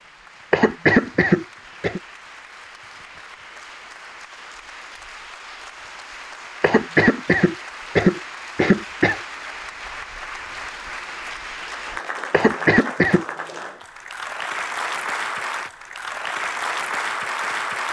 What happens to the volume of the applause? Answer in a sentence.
The loudness of the applause goes up.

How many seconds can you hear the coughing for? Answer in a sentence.
You can hear the coughing for 5 seconds altogether.